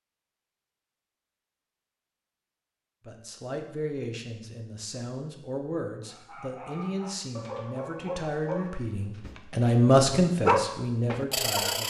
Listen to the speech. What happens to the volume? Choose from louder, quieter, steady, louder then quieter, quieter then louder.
louder.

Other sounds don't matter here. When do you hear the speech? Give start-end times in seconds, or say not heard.
3.0-11.8.